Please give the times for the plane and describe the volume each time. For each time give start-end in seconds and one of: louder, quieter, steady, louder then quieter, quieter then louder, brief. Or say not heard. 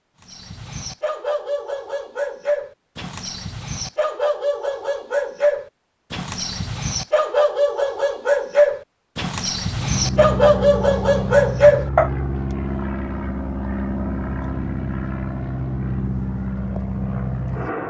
9.7-17.8 steady.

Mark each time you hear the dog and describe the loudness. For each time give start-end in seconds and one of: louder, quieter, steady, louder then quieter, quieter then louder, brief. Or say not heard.
0.2-12.1 louder.